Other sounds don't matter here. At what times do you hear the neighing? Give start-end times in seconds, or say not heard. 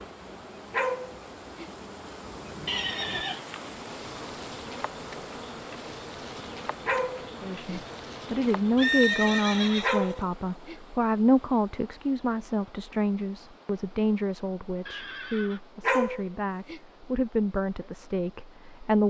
2.6-3.4, 8.8-10.2, 14.8-15.6.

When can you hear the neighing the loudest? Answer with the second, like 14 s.
9 s.